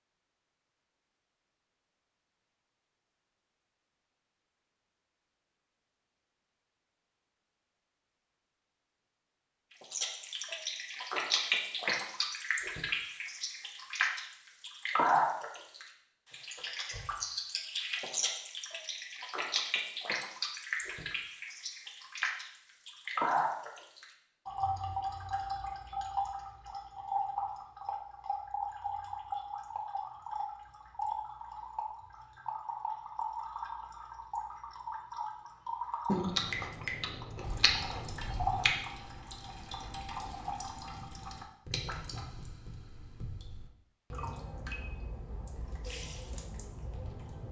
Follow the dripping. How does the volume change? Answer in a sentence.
The volume of the dripping goes down.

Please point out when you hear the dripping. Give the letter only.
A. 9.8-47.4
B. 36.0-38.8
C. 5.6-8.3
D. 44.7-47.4
A.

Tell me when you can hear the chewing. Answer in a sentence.
The chewing can be heard from 36.0 to 38.8 s.